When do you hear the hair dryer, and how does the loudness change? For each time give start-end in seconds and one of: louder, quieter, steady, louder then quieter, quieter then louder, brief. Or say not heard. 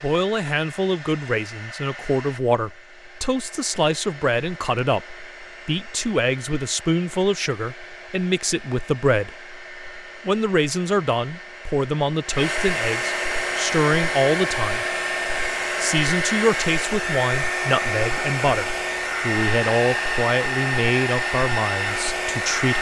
0.0-22.7 louder.